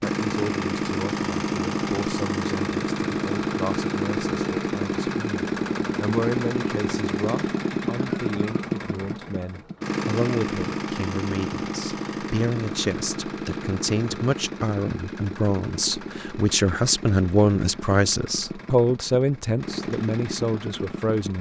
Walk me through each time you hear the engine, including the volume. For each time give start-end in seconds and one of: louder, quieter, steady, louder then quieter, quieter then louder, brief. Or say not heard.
0.0-21.3 quieter.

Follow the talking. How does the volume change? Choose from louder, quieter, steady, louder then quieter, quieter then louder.
louder.